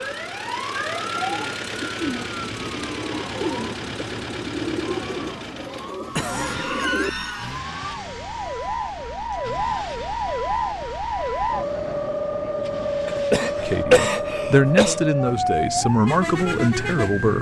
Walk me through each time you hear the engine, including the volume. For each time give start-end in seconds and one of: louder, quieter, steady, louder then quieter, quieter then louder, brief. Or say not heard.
0.0-13.8 quieter.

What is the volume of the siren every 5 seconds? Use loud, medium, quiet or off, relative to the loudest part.
medium, medium, loud, loud.